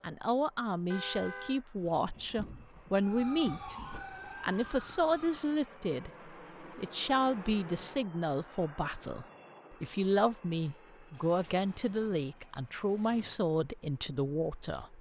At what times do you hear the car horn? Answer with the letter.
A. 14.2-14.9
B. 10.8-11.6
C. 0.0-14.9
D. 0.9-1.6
D.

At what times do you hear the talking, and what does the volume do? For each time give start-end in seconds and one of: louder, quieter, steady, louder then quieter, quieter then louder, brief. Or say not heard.
0.0-14.9 steady.